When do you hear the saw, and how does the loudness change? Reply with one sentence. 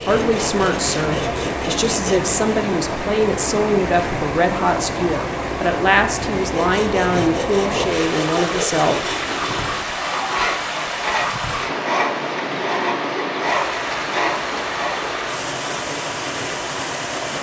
You can hear the saw briefly from 0.0 to 2.4 s; and from 6.4 to 15.0 s, at a steady volume.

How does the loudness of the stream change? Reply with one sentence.
The volume of the stream stays about the same.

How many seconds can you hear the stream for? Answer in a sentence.
You can hear the stream for 17 seconds altogether.